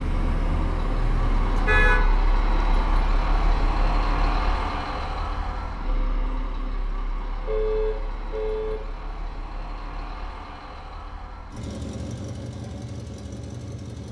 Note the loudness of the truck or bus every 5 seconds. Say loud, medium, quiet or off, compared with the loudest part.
loud, medium, medium.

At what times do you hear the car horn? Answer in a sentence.
You can hear the car horn from 0.0 to 2.0 s and from 7.5 to 8.8 s.